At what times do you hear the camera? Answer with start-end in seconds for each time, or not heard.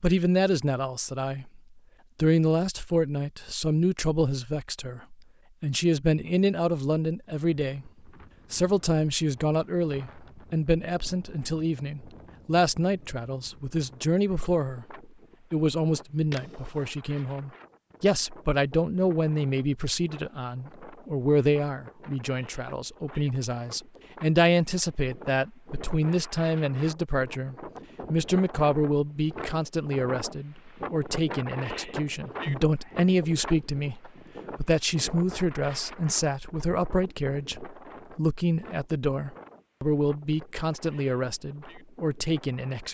16.3-16.9.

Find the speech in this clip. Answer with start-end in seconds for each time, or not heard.
0.0-7.9, 8.5-42.8.